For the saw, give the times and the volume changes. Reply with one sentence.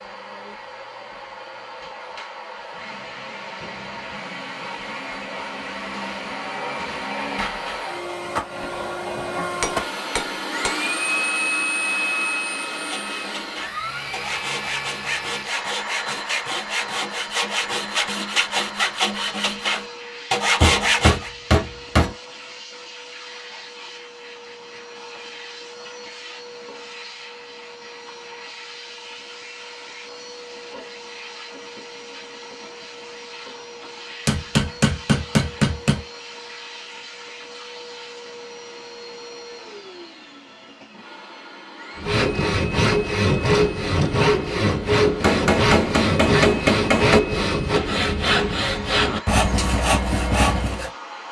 You can hear the saw from 12.7 to 21.3 s, getting louder; and from 42.0 to 50.9 s, at a steady volume.